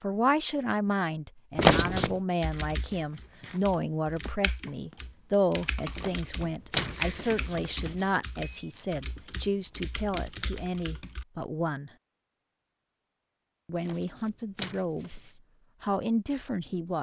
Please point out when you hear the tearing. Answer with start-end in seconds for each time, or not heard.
1.6-2.2, 6.0-7.9, 13.8-15.3.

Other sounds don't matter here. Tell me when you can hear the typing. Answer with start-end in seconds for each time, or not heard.
2.4-11.2.